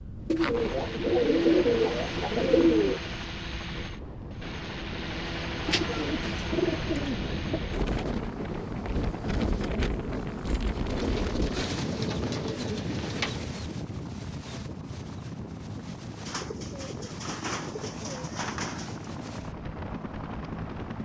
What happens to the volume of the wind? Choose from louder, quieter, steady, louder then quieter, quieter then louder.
louder then quieter.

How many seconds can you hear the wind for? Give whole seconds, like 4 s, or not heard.
21 s.